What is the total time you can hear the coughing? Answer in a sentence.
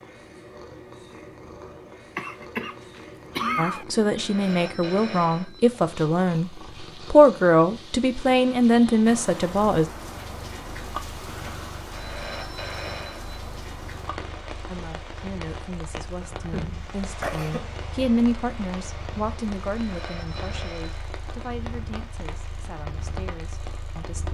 You can hear the coughing for 3 seconds altogether.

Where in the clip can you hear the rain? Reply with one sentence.
You can hear the rain from 9.1 to 24.2 s.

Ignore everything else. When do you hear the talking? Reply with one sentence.
The talking can be heard from 3.5 to 9.8 s and from 14.7 to 24.2 s.